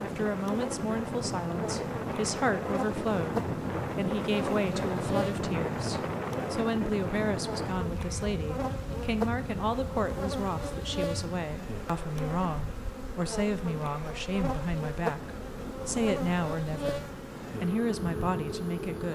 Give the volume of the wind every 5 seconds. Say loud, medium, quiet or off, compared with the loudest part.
loud, loud, medium, medium.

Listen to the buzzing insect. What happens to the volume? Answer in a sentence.
The volume of the buzzing insect stays about the same.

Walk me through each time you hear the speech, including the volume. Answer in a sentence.
The speech can be heard from 0.0 to 19.1 s, at a steady volume.